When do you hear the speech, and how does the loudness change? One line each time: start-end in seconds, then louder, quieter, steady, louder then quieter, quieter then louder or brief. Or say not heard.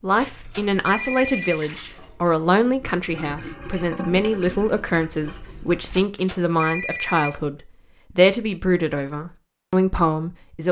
0.0-10.6 steady.